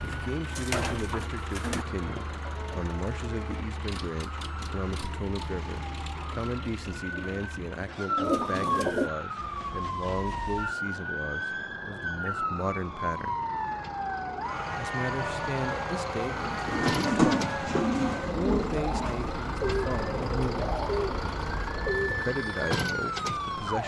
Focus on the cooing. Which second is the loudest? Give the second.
17 s.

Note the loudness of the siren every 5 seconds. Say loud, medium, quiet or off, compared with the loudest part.
medium, loud, loud, loud, loud.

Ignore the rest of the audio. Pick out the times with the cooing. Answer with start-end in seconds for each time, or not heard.
0.0-1.9, 6.1-9.1, 16.2-22.2.